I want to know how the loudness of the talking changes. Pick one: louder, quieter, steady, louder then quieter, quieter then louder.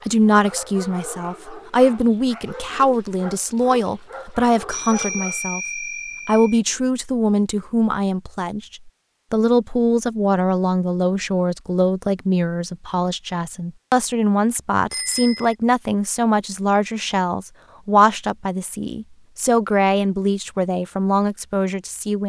steady.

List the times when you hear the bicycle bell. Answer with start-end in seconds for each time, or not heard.
4.7-6.6, 14.9-15.6.